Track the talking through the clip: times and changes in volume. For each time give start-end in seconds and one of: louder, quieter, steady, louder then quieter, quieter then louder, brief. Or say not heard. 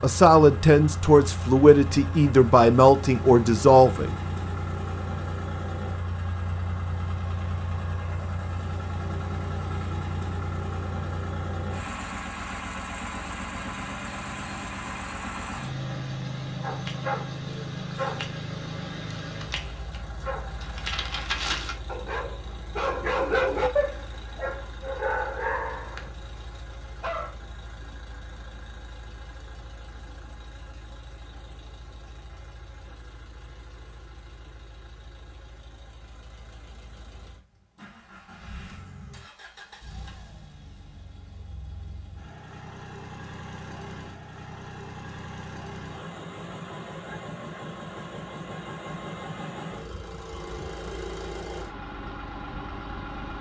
0.0-4.2 steady.